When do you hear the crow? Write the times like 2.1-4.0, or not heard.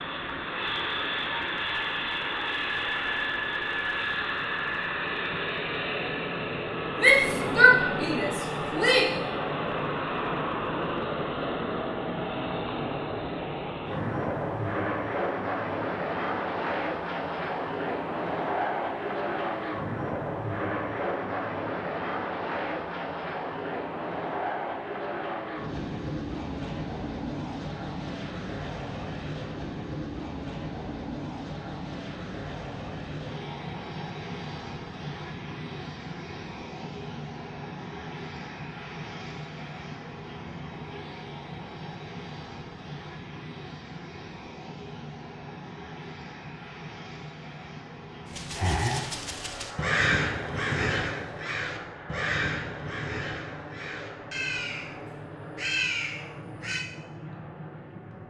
48.3-56.9.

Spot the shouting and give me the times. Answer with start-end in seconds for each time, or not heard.
7.0-9.1.